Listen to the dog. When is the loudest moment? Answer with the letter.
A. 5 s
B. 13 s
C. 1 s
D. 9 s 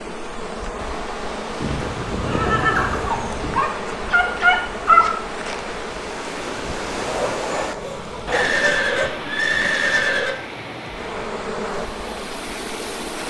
A.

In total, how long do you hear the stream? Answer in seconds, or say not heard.
13 s.